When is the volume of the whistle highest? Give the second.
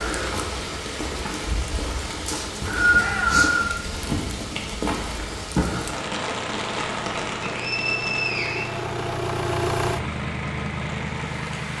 3 s.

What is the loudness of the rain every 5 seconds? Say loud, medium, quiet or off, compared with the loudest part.
loud, loud, medium.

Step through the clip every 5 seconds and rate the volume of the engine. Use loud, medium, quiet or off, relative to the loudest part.
medium, loud, loud.